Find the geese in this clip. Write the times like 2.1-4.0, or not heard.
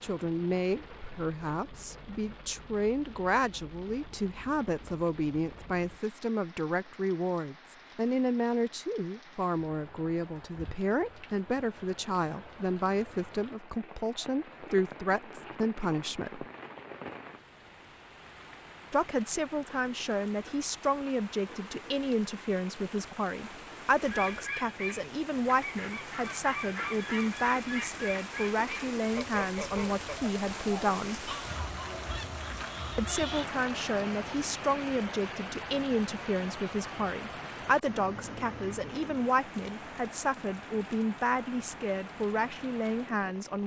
24.1-33.5.